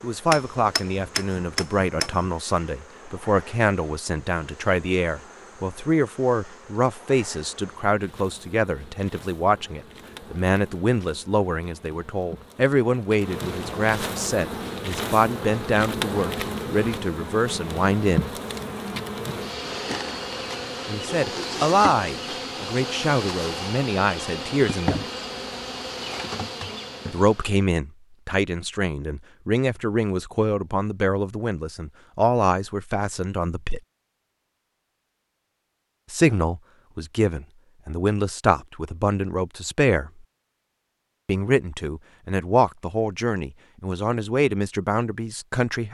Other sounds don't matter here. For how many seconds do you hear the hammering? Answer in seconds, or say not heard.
2 s.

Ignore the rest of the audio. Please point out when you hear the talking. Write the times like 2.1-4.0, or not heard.
0.0-18.3, 20.9-25.1, 27.1-33.8, 36.1-40.1, 41.2-45.9.